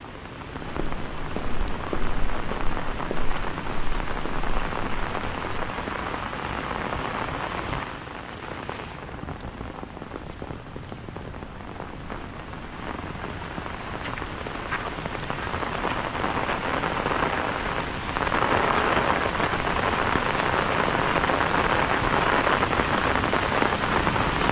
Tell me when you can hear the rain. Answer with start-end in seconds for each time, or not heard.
0.0-24.4.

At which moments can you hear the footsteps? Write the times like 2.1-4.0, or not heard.
0.6-5.8.